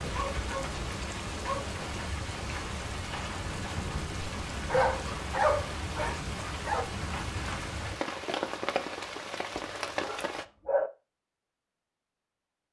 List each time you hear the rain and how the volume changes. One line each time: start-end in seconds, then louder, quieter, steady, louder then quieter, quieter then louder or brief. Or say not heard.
0.0-10.4 steady.